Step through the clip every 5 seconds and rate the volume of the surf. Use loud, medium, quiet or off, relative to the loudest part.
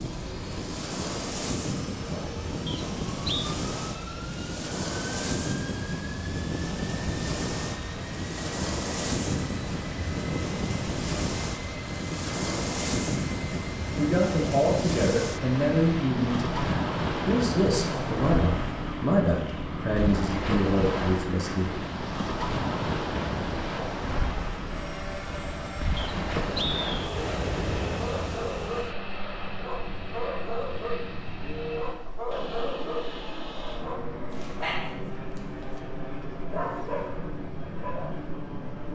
loud, loud, loud, loud, loud, loud, quiet, quiet.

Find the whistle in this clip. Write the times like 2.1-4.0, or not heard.
2.6-3.5, 25.9-27.2.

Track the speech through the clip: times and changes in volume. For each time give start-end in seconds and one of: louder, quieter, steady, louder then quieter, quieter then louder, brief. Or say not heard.
13.9-21.7 steady.